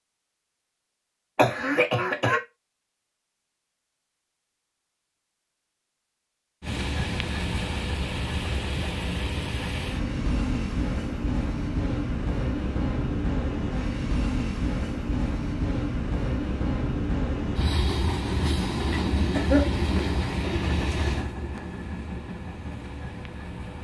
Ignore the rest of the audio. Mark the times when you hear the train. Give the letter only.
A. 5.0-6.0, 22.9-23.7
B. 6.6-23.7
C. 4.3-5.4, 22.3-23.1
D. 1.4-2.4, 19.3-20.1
B.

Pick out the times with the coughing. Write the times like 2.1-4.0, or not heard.
1.4-2.4, 19.3-20.1.